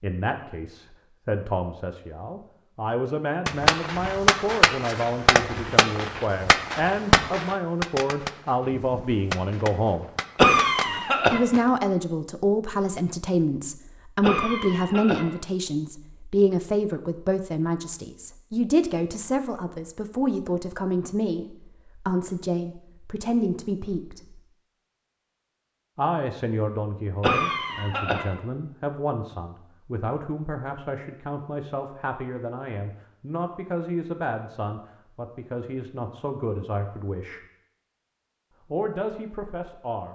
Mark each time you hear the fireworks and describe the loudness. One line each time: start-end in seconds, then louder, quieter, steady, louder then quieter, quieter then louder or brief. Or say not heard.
3.5-11.7 quieter.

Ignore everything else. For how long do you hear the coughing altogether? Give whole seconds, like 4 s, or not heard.
3 s.